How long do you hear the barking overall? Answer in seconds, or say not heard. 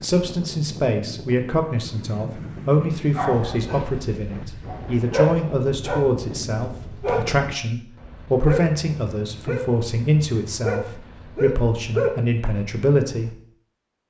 10 s.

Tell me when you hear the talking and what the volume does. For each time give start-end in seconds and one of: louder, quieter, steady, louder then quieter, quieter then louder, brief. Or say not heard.
0.0-13.3 steady.